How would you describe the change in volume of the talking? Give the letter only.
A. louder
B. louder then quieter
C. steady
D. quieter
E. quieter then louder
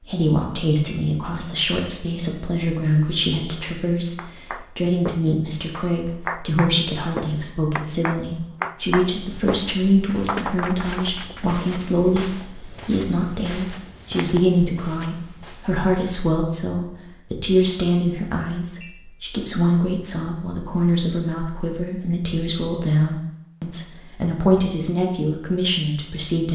C.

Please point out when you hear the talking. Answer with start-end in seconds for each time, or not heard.
0.0-26.5.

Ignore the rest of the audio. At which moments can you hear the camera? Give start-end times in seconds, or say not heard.
not heard.